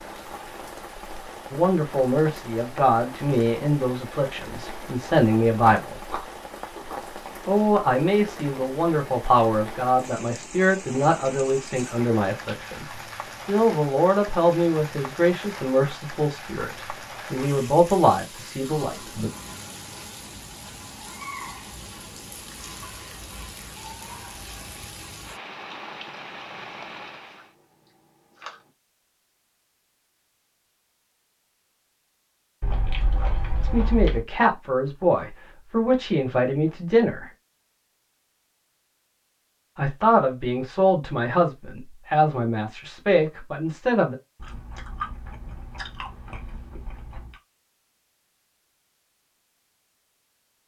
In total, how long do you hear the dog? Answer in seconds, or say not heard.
not heard.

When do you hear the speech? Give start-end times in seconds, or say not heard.
1.5-6.0, 7.5-19.3, 33.6-37.3, 39.8-44.1.